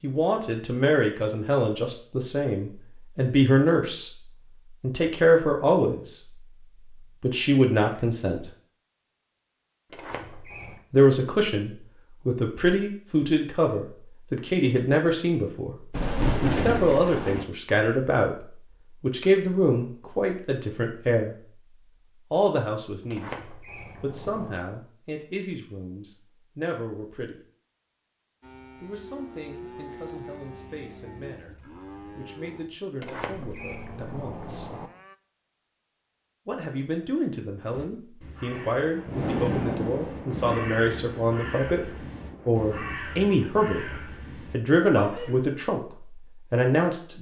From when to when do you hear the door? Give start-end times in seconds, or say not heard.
9.9-10.8, 23.1-24.6, 33.0-34.9.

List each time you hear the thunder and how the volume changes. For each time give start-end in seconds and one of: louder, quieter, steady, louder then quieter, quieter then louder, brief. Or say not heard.
15.9-17.4 brief
38.4-43.0 quieter.